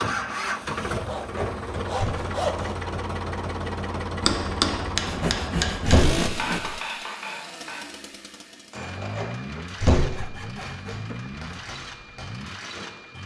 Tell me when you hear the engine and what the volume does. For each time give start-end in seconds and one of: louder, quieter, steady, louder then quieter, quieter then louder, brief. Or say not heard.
0.0-13.2 quieter.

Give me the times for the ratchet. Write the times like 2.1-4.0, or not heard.
not heard.